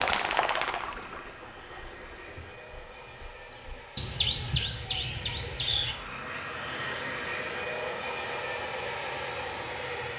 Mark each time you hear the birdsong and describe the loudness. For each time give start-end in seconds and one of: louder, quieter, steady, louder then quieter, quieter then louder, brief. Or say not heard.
0.0-6.0 quieter then louder.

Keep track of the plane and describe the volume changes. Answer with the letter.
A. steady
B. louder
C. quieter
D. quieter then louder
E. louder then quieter
B.